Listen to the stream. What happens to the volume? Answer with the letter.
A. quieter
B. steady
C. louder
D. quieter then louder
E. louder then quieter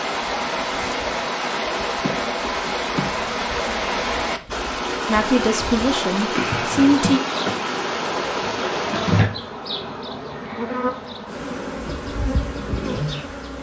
A.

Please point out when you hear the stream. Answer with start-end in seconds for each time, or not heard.
0.0-11.3.